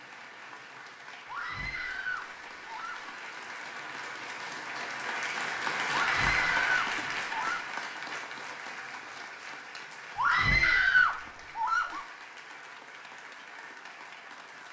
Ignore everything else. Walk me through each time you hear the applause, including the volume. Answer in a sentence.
The applause can be heard from 0.0 to 14.6 s, getting louder then quieter.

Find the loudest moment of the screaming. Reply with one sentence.
The loudest moment of the screaming is at 11 seconds.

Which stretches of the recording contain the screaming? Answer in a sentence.
The screaming can be heard from 1.2 to 3.1 s, from 5.9 to 7.7 s and from 10.2 to 12.1 s.